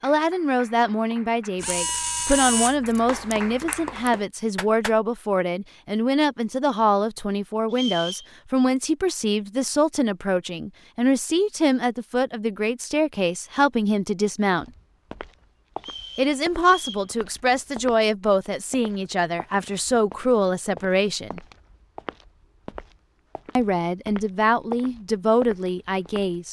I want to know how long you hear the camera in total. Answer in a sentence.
The camera can be heard for 2 seconds in total.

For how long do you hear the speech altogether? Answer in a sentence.
You can hear the speech for 23 seconds altogether.